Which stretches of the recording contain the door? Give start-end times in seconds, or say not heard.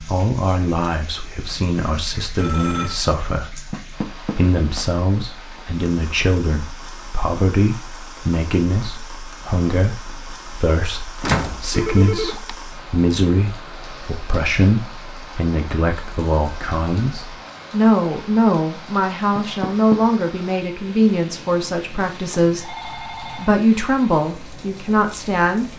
3.7-4.4, 11.2-11.7, 19.4-20.0.